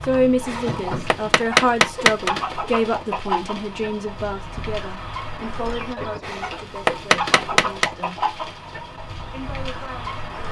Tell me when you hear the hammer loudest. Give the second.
2 s.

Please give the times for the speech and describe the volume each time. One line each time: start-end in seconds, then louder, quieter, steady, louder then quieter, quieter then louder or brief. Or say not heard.
0.0-8.2 quieter
9.3-10.4 brief.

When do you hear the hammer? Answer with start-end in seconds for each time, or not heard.
0.0-2.3, 5.8-7.9.